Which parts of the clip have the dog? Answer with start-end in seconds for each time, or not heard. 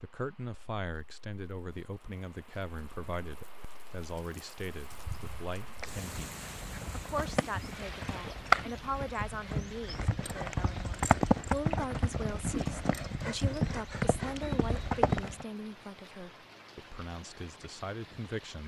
not heard.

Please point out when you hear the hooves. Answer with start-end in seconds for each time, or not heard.
4.8-15.4.